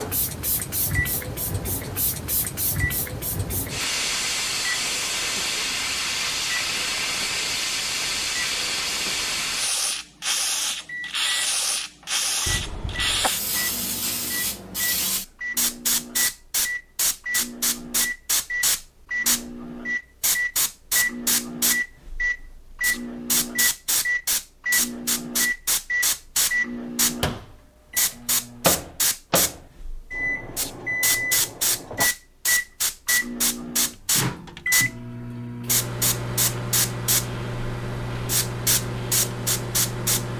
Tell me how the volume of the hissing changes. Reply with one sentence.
The loudness of the hissing stays about the same.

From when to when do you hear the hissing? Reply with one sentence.
The hissing can be heard from 0.0 to 40.3 s.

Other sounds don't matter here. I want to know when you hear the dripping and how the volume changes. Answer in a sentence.
You can't hear the dripping here.